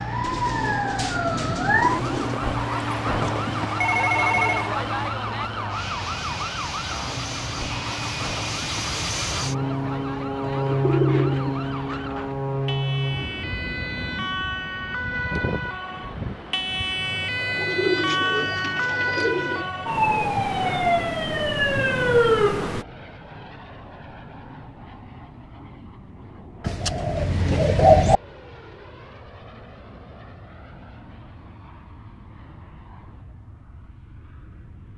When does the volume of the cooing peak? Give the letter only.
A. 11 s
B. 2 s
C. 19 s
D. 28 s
D.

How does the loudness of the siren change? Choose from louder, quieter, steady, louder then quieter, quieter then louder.
quieter then louder.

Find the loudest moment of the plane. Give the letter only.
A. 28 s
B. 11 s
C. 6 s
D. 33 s
B.